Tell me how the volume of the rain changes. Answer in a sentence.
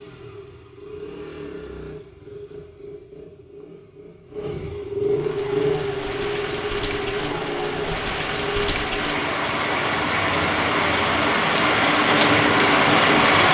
The loudness of the rain goes up.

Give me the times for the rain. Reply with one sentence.
You can hear the rain from 5.0 to 13.4 s.